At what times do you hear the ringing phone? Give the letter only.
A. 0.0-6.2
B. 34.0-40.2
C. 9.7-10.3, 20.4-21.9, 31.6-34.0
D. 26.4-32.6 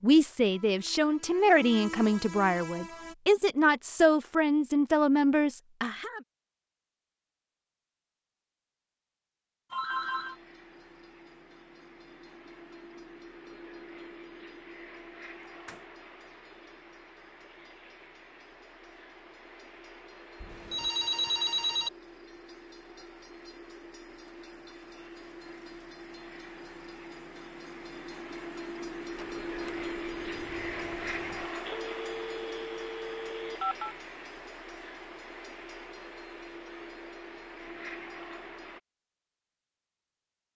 C.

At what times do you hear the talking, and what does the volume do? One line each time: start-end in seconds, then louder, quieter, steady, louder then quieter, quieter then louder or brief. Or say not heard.
0.0-6.2 steady.